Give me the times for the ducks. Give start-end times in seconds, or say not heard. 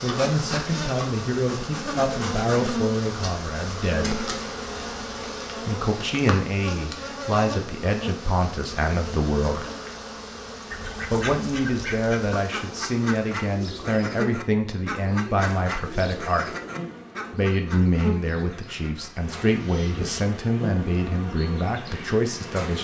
10.7-20.2.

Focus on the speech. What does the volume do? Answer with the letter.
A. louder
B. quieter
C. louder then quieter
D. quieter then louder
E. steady
E.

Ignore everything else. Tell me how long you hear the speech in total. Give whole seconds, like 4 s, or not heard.
19 s.